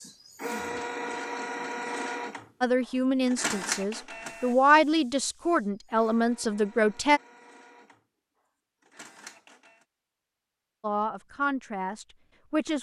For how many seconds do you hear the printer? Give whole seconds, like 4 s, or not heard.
10 s.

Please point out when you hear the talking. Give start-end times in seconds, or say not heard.
2.6-7.2, 10.8-12.7.